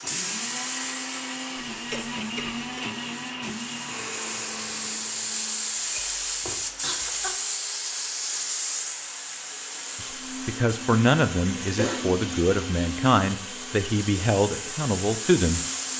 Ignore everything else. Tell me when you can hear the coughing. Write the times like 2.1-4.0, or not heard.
1.9-2.6, 5.8-7.3, 11.8-12.2.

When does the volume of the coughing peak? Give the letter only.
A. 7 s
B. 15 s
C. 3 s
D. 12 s
D.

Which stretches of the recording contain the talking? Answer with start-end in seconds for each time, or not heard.
10.0-15.9.